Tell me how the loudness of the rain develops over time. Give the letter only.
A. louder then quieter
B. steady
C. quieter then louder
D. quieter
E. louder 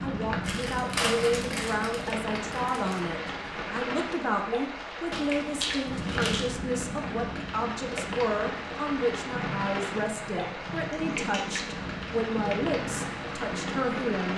B.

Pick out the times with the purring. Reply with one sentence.
You can hear the purring from 9.1 to 14.3 s.